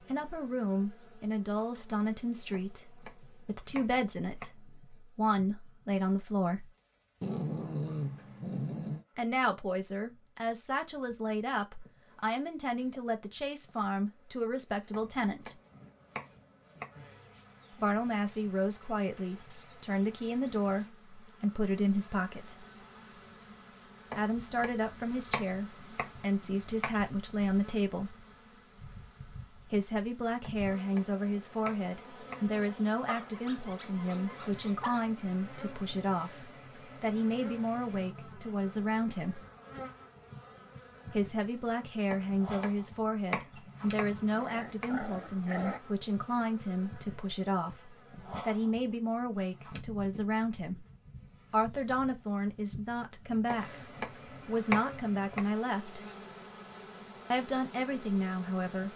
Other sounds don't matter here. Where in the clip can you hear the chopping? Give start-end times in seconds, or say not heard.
2.5-4.6, 14.9-17.4, 24.1-27.0, 30.4-32.5, 42.1-44.9, 53.5-55.5.